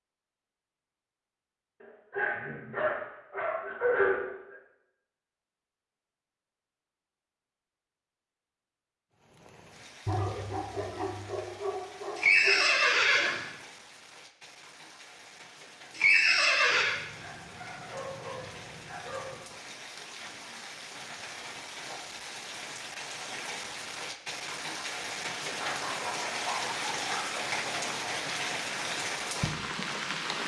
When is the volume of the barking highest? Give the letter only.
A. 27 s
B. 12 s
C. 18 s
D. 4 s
D.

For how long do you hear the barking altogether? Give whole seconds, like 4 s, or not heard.
10 s.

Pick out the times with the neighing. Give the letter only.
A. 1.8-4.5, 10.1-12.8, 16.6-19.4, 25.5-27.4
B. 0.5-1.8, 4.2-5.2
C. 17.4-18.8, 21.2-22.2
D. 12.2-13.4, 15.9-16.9
D.